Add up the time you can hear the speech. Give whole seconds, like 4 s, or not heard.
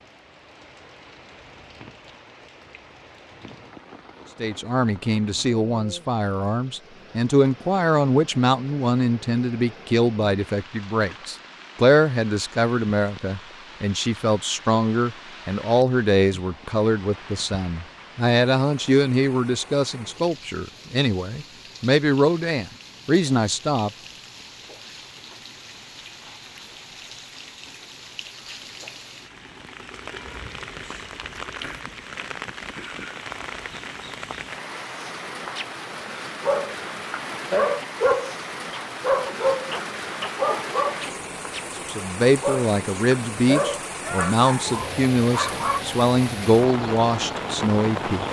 26 s.